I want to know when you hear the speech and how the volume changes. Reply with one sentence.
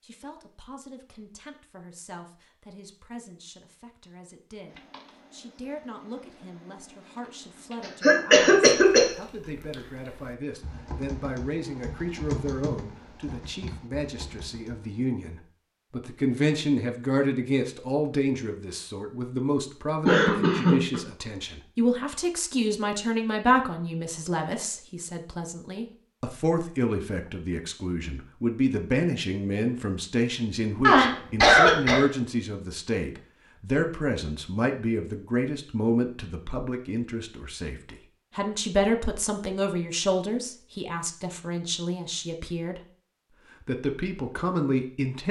You can hear the speech from 0.0 to 42.8 s, getting louder; and briefly from 43.6 to 45.2 s.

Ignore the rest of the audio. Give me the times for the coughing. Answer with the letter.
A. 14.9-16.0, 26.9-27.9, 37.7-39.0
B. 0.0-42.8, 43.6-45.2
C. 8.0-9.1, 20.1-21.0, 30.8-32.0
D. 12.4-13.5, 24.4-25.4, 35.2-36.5
C.